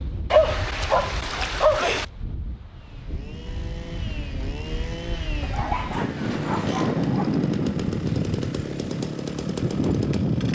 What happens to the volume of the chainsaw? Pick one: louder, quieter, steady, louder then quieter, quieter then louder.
louder.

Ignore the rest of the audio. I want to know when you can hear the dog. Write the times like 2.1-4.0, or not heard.
0.3-2.0, 5.4-7.3.